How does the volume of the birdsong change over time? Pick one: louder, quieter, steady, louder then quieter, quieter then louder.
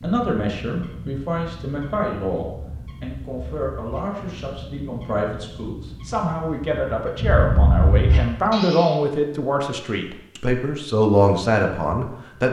louder.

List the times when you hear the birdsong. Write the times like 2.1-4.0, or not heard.
0.0-8.9.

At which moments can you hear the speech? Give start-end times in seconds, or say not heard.
0.0-12.4.